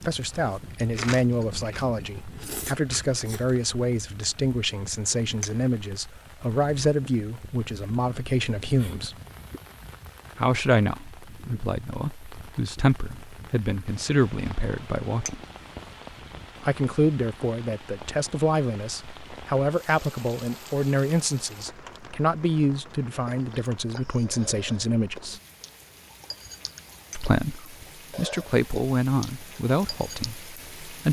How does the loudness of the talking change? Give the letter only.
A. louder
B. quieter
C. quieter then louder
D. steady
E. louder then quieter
D.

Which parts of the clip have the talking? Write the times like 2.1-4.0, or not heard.
0.1-9.2, 10.3-15.4, 16.6-25.4, 27.1-31.0.